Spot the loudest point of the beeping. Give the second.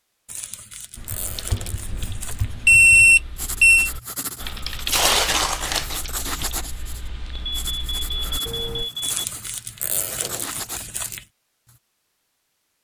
3 s.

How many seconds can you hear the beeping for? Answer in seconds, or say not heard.
3 s.